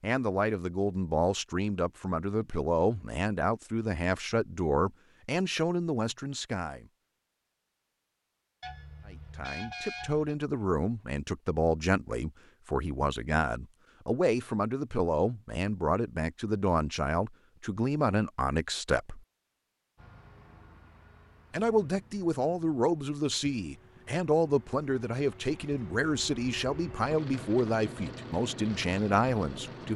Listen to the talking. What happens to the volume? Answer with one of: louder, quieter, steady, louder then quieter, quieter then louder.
steady.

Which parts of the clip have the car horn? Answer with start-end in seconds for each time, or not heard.
8.6-10.3.